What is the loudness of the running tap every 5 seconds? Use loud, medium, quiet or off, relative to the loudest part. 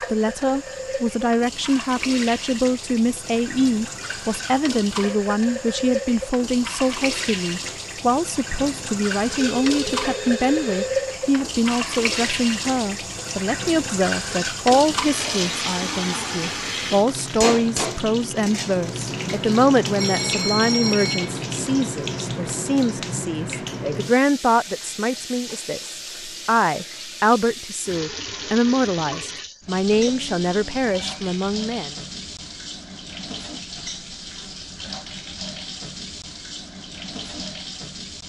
medium, loud, loud, loud, loud, medium, medium, medium.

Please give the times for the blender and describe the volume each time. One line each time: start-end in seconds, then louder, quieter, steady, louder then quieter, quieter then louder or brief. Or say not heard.
not heard.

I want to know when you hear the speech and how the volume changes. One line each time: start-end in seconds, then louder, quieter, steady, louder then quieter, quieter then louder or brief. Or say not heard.
0.1-31.9 steady.